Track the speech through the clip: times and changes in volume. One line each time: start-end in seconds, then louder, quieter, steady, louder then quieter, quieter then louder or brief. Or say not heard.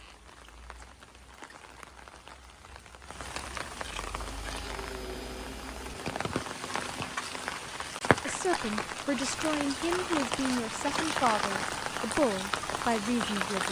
8.2-13.6 steady.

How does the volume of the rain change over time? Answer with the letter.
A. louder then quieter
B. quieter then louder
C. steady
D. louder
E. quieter
D.